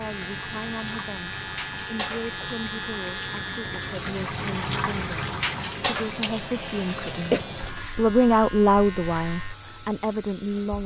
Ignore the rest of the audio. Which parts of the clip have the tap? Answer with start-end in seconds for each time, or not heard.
0.0-10.8.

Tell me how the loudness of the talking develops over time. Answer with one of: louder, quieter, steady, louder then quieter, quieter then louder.
louder then quieter.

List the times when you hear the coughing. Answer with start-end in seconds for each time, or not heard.
6.2-7.5.